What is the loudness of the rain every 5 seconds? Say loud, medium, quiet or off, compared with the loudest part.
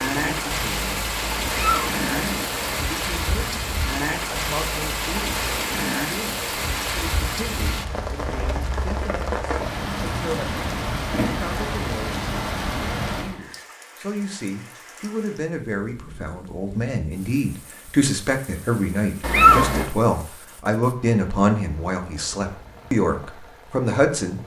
loud, loud, loud, quiet, quiet.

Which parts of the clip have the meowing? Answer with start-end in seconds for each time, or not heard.
1.4-2.8, 19.2-19.9.